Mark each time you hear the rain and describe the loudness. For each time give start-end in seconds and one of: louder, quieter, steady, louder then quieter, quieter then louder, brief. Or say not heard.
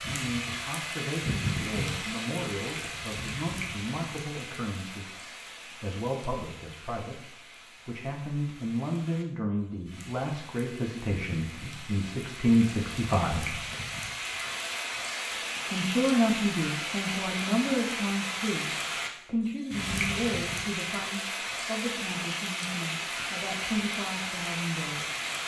0.0-25.4 quieter then louder.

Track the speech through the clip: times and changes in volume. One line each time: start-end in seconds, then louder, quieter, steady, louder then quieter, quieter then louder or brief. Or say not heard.
0.0-13.6 louder
15.7-25.2 quieter.